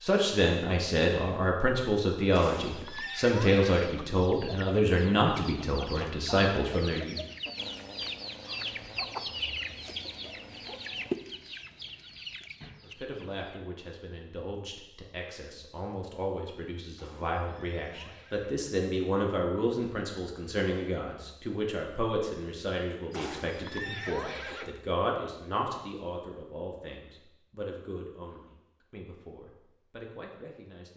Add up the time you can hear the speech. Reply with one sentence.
You can hear the speech for 25 seconds altogether.